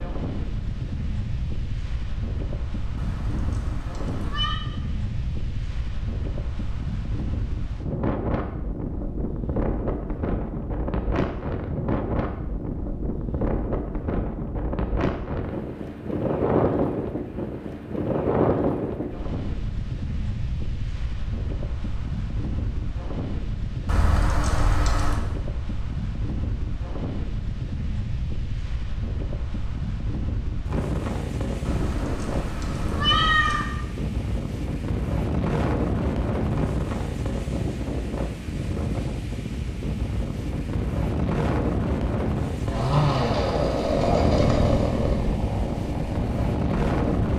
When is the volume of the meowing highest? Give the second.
33 s.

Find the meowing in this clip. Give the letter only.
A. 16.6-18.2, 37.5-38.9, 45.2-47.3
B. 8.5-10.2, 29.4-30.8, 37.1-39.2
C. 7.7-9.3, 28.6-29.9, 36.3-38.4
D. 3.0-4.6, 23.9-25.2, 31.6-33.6
D.